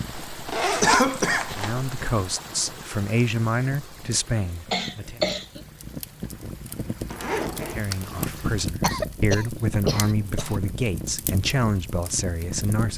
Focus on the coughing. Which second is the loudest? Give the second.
1 s.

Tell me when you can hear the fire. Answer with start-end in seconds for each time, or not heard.
0.0-12.9.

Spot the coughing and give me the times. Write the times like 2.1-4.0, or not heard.
0.8-1.6, 4.7-5.6, 8.8-10.6.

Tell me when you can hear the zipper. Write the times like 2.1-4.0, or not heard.
0.1-1.9, 7.0-7.8.